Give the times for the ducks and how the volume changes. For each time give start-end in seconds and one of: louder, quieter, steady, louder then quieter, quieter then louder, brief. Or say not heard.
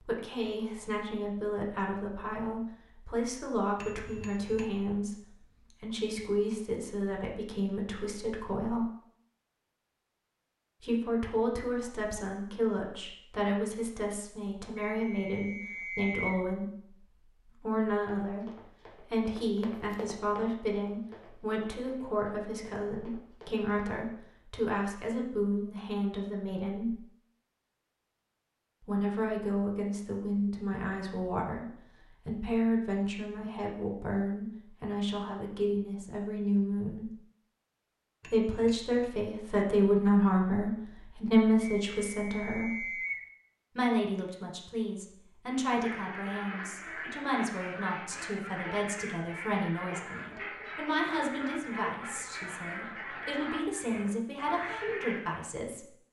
45.5-55.4 steady.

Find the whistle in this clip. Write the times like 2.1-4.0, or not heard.
14.8-16.4, 41.6-43.2.